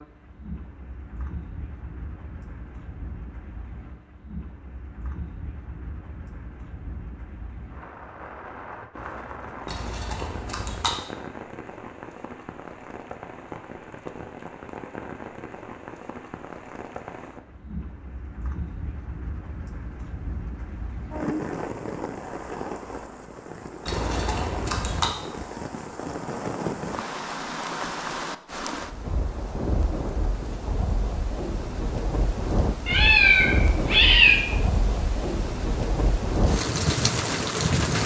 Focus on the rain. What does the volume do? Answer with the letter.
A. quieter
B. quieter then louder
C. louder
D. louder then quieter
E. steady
C.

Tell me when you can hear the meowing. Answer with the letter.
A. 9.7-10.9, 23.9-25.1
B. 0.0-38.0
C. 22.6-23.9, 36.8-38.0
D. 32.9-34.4
D.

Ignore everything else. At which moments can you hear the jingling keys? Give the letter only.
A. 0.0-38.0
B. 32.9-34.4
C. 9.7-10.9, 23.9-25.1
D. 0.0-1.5
C.